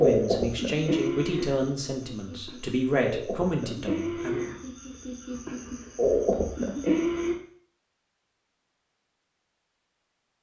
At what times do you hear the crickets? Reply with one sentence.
You can hear the crickets from 0.0 to 7.3 s.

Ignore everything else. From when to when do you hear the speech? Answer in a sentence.
The speech can be heard from 0.0 to 4.5 s.